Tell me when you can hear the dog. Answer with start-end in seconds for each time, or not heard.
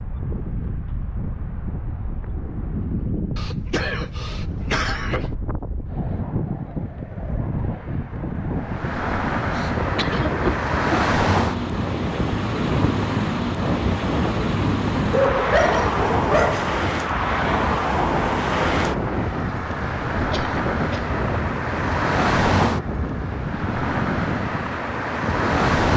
15.1-16.7.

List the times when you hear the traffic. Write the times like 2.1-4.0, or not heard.
8.6-25.9.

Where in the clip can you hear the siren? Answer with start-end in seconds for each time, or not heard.
not heard.